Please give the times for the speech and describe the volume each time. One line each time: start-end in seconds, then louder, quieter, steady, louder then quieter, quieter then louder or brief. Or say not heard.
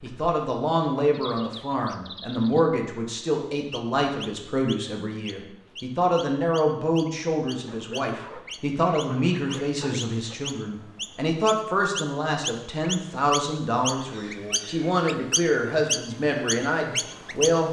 0.0-17.6 steady.